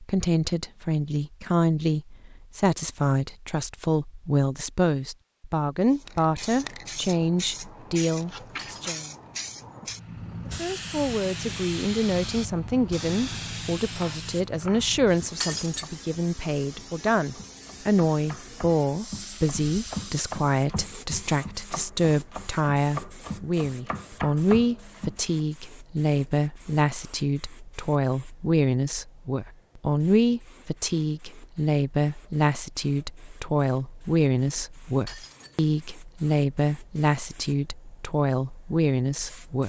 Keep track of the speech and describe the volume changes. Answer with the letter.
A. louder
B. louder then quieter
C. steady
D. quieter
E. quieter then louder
C.